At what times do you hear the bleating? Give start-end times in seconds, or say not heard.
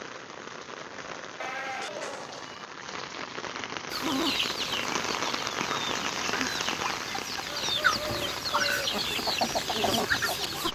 1.4-2.6.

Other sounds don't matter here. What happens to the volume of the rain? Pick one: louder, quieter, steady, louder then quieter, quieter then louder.
louder then quieter.